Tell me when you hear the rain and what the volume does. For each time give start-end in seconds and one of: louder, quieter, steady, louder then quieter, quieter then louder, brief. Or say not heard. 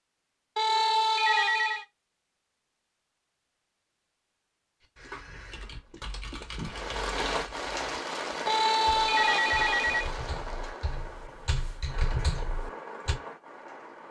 6.7-14.0 quieter.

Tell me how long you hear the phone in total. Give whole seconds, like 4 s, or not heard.
3 s.